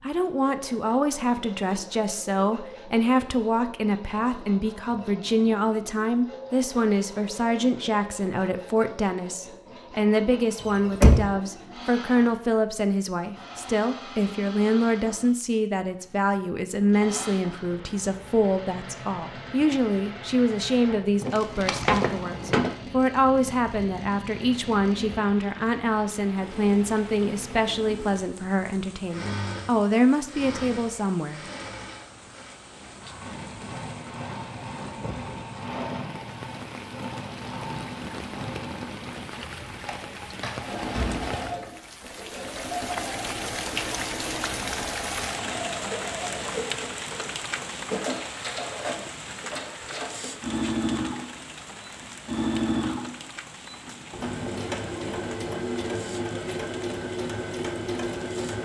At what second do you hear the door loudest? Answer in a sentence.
The volume of the door peaks at 11 seconds.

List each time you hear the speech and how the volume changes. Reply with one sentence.
You can hear the speech from 0.0 to 31.4 s, at a steady volume.